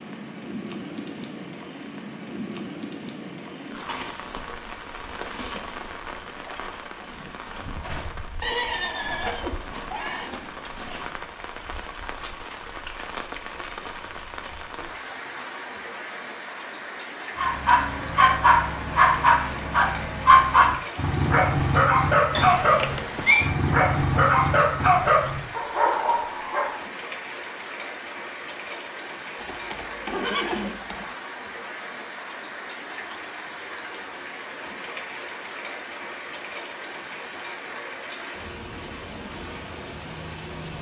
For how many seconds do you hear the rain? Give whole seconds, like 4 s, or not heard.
41 s.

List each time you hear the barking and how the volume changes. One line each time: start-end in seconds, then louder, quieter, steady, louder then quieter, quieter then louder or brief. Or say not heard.
17.4-26.8 steady.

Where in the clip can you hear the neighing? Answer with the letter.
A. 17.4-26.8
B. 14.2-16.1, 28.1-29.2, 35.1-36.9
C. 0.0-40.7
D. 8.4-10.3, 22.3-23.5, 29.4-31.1
D.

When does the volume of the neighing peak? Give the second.
23 s.